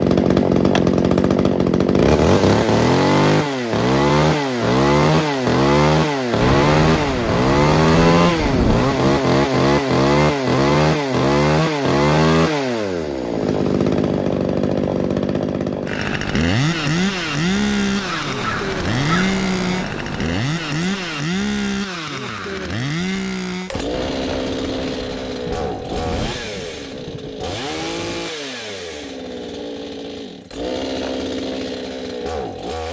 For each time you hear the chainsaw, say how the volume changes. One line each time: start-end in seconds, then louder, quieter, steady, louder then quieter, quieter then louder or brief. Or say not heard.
0.0-32.8 quieter.